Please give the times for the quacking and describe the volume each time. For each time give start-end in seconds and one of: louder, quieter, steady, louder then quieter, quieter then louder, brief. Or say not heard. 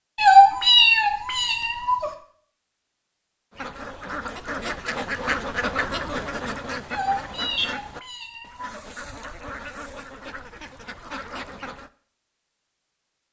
3.5-11.9 quieter.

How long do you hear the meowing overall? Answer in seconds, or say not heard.
4 s.